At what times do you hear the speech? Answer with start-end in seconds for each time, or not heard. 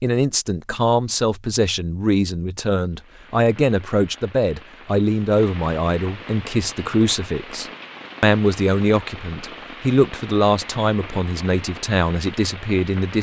0.0-13.1.